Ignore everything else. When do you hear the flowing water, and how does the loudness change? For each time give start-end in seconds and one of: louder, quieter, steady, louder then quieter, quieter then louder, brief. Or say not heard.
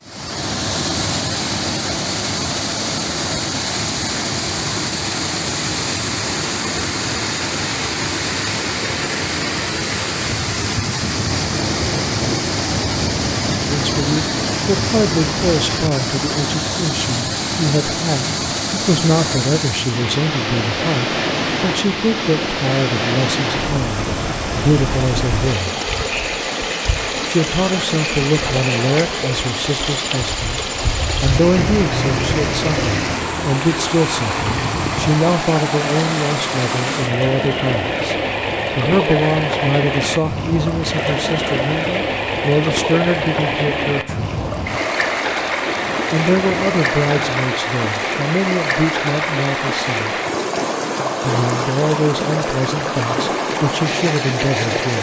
0.0-54.9 steady.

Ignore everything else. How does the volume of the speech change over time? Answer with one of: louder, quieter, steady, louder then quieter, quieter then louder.
steady.